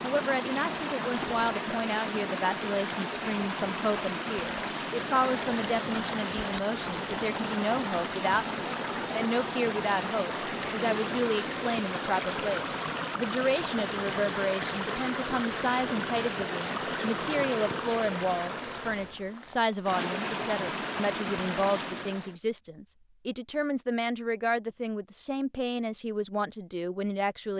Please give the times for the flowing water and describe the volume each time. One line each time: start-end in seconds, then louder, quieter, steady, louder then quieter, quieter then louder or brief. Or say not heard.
0.0-22.4 steady.